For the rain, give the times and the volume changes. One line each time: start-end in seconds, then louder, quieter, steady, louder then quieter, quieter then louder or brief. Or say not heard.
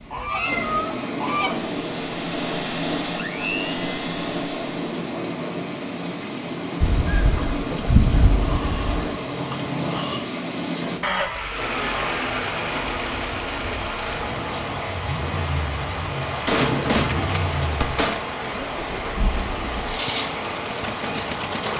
0.0-21.7 steady.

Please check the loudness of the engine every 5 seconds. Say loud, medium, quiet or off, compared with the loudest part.
loud, off, loud, loud, loud.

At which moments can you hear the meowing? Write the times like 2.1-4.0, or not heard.
0.2-0.9, 8.4-10.2, 16.6-17.5.